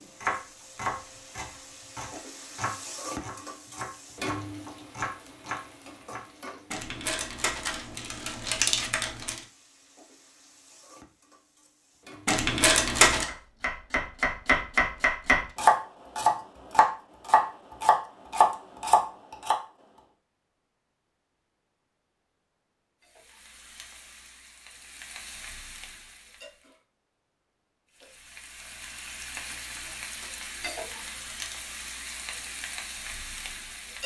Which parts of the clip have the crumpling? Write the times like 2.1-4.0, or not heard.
6.7-9.4, 12.2-13.2, 29.4-31.6.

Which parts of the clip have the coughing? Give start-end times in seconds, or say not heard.
not heard.